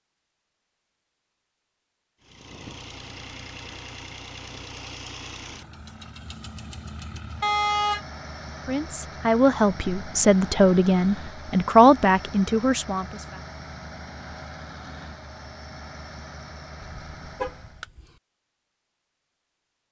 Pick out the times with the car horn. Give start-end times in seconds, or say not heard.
7.4-8.1, 16.8-18.0.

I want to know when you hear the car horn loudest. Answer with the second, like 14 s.
8 s.